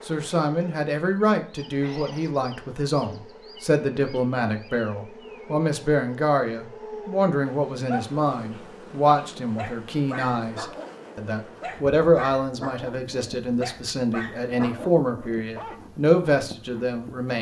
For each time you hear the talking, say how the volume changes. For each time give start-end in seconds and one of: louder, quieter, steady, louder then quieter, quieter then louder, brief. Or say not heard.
0.1-17.3 steady.